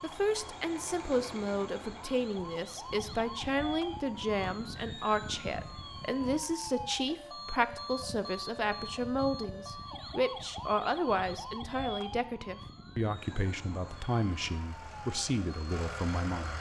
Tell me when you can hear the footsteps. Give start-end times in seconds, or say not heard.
not heard.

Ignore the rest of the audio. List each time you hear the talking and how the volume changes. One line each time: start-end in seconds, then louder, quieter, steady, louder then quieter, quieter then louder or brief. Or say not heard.
0.0-16.5 steady.